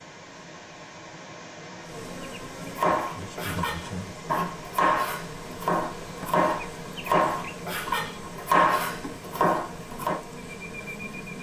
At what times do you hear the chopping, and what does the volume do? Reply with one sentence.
You can hear the chopping from 2.8 to 10.2 s, getting louder.